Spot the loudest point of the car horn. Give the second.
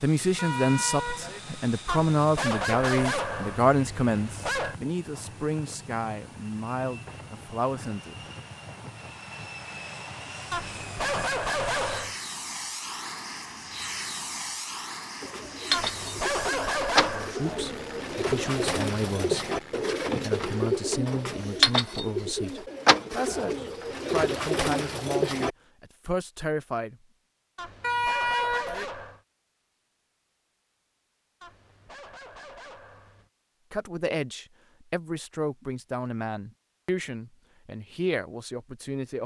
28 s.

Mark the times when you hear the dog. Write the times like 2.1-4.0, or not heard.
1.9-4.8, 10.5-12.2, 15.7-17.4, 27.6-29.2, 31.4-33.3.